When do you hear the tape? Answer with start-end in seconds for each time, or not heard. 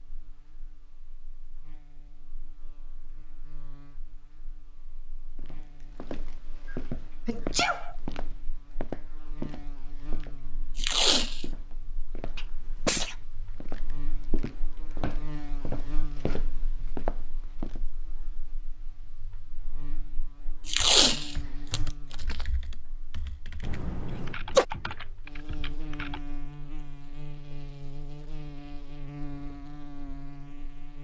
10.8-11.4, 20.6-22.4.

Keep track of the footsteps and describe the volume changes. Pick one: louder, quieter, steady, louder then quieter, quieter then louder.
quieter then louder.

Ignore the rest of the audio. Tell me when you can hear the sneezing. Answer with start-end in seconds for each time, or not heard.
7.2-8.0, 12.3-13.2, 23.6-24.6.